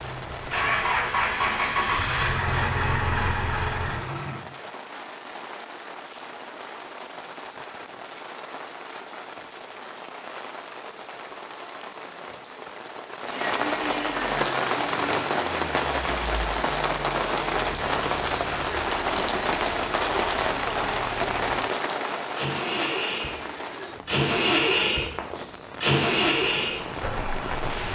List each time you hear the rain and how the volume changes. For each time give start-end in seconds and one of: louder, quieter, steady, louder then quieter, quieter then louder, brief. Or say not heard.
0.0-27.8 louder then quieter.